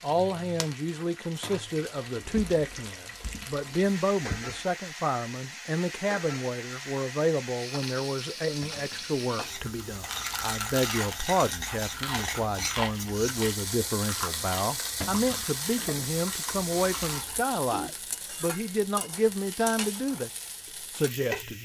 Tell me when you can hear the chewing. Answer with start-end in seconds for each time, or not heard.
9.6-17.4.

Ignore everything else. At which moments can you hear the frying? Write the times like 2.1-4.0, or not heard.
0.0-21.6.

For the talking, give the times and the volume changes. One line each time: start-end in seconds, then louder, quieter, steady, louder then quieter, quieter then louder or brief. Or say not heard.
0.0-20.3 steady
20.9-21.6 brief.